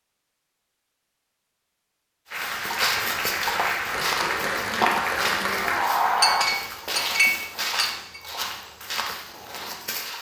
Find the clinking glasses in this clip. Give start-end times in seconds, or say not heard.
6.2-8.2.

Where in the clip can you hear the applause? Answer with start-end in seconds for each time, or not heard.
2.3-6.5.